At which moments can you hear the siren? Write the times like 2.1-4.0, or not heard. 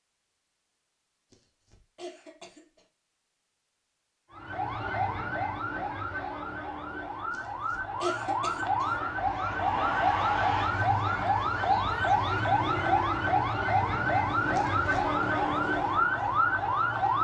4.3-17.1.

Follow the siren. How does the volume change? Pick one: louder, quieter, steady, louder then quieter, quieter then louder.
louder.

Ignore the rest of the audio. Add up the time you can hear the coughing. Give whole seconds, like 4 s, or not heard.
4 s.